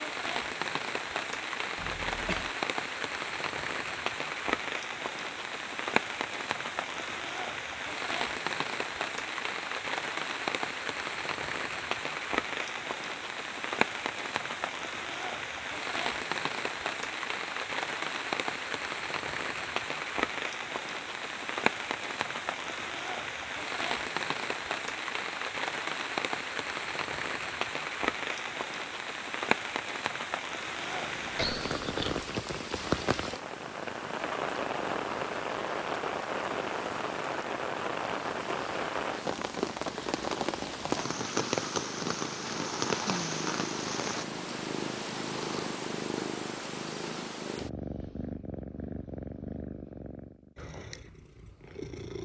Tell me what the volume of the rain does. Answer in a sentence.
The volume of the rain stays about the same.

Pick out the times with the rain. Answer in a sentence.
You can hear the rain from 0.0 to 44.2 s.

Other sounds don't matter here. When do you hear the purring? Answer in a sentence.
You can hear the purring from 30.6 to 52.1 s.